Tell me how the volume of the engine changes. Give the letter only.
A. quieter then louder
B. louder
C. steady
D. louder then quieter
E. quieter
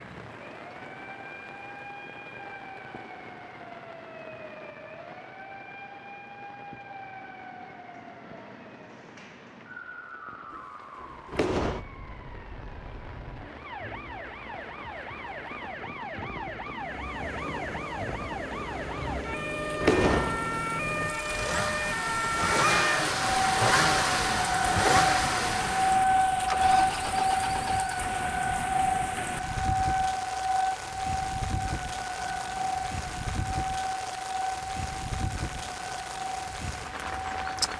D.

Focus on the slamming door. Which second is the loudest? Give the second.
20 s.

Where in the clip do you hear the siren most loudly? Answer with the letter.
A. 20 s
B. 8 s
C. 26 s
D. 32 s
C.